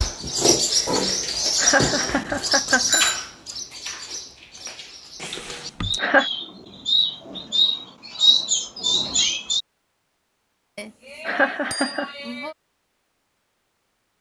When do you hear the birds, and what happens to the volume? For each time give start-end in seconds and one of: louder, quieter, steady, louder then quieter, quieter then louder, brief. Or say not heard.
0.0-9.7 quieter then louder.